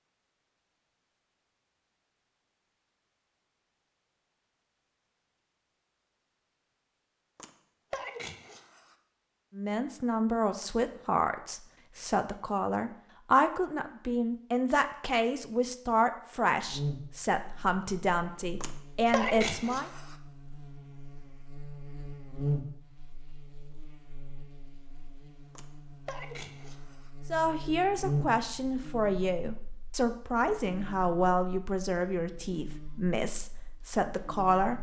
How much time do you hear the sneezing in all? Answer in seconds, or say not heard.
5 s.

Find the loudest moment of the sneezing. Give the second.
19 s.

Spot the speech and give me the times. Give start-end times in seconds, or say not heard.
9.6-19.9, 27.3-34.7.